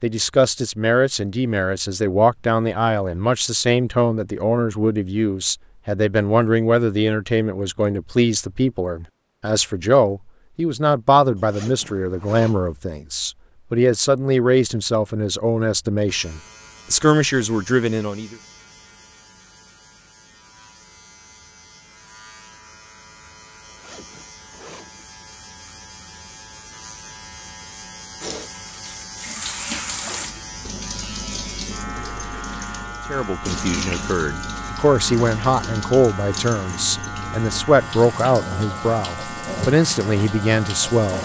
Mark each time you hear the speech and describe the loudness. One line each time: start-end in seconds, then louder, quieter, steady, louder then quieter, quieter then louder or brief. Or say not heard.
0.0-18.4 steady
33.1-41.2 steady.